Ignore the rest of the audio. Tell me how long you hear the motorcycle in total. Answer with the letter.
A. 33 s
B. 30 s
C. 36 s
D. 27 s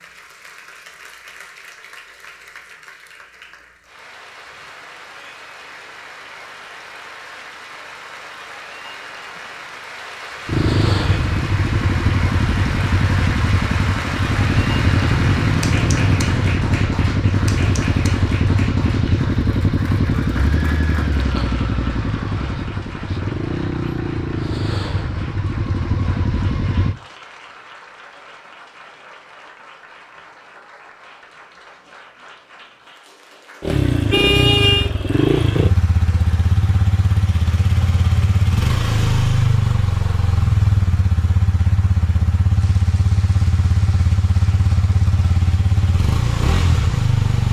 B.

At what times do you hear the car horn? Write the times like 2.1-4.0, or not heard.
34.1-34.9.